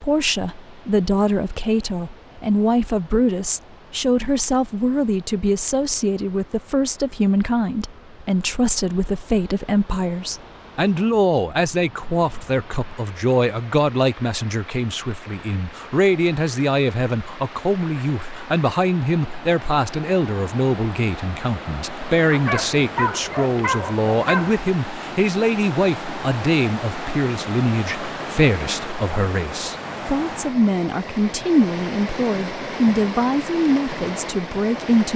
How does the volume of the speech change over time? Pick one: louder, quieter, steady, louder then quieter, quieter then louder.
steady.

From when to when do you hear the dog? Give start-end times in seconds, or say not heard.
22.3-24.6.